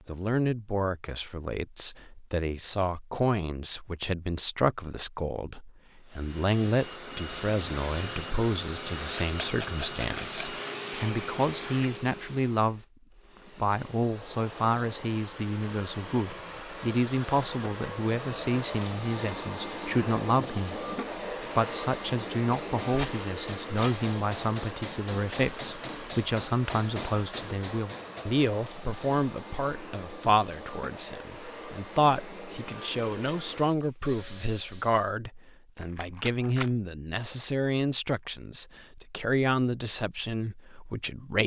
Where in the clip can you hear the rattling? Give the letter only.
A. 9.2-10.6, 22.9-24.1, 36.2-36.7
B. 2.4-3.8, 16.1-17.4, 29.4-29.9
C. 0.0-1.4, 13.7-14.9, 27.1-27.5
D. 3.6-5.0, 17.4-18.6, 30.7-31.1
A.